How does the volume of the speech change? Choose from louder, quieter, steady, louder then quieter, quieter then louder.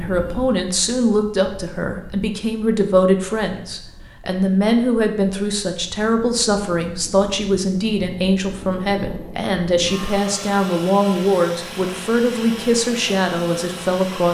steady.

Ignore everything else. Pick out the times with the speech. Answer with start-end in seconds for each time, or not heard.
0.0-14.2.